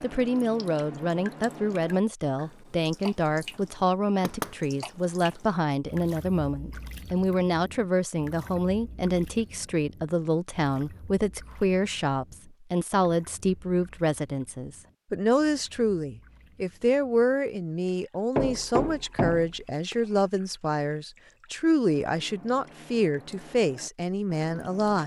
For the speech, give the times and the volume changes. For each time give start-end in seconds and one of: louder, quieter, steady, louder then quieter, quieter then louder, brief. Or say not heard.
0.0-25.0 steady.